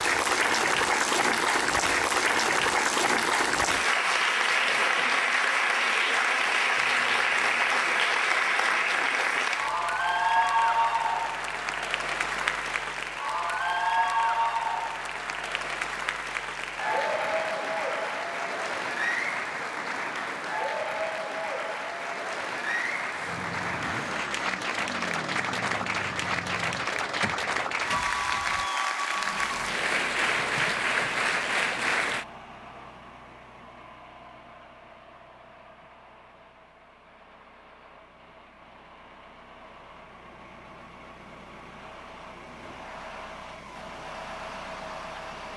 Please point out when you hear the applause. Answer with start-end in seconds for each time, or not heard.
0.0-32.2.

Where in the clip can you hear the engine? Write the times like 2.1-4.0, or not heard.
23.1-45.5.